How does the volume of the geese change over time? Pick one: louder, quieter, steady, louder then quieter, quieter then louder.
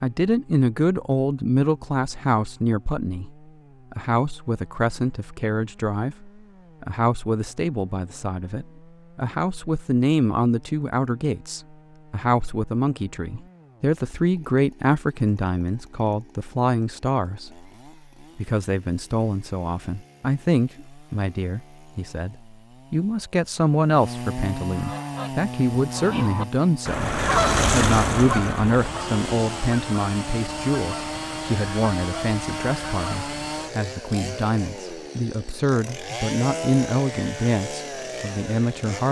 louder then quieter.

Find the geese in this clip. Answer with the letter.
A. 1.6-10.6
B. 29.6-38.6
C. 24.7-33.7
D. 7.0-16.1
C.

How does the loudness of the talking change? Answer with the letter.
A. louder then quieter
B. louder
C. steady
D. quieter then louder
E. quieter
C.